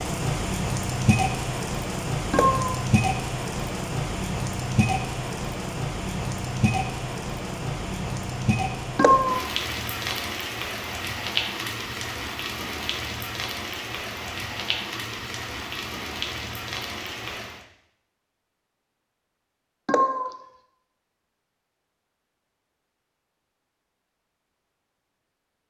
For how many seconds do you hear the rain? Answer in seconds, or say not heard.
18 s.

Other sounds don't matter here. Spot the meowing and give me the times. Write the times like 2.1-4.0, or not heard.
2.3-2.8, 8.9-9.4, 19.9-20.4.